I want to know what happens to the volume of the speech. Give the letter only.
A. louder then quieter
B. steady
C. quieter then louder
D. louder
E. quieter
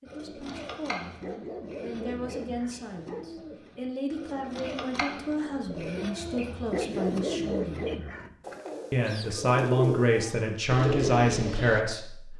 D.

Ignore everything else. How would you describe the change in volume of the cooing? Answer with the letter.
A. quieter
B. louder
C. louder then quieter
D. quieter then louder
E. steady
B.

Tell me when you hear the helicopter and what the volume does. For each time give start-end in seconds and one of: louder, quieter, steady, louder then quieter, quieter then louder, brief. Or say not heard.
not heard.